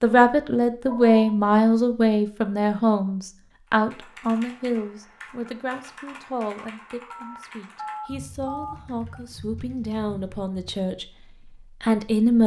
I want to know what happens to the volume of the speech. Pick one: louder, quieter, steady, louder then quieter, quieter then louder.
quieter then louder.